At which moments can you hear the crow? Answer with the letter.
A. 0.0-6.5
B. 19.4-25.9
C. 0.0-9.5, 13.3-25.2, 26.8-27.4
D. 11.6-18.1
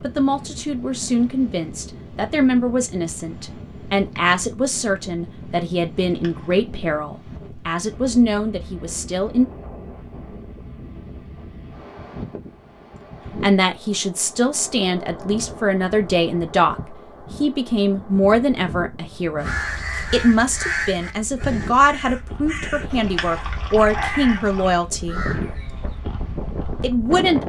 B.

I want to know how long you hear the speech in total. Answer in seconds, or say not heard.
22 s.